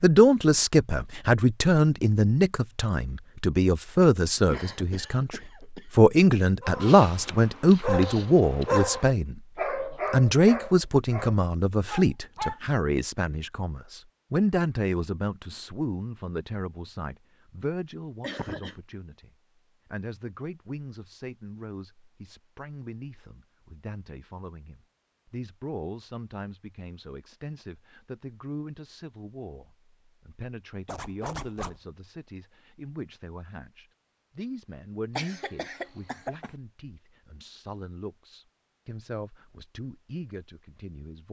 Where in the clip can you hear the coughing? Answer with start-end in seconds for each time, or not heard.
4.5-5.9, 18.2-18.8, 35.1-36.5.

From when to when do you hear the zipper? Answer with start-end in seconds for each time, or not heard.
30.9-31.8.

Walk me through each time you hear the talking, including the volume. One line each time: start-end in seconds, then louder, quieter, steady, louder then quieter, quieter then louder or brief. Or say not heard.
0.0-41.2 quieter.